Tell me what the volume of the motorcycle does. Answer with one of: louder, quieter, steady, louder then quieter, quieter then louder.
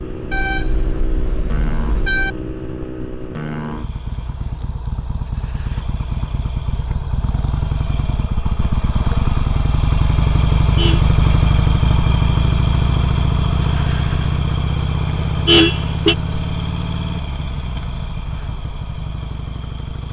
louder then quieter.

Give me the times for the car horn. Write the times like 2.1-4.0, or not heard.
0.3-2.3, 10.6-11.0, 15.1-16.1.